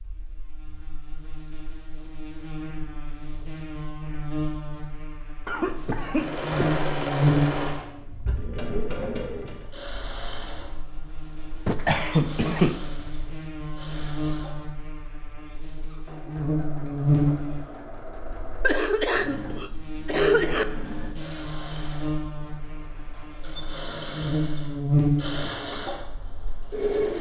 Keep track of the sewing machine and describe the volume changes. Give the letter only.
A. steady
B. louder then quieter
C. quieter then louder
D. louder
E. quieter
C.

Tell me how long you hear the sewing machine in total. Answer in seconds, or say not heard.
21 s.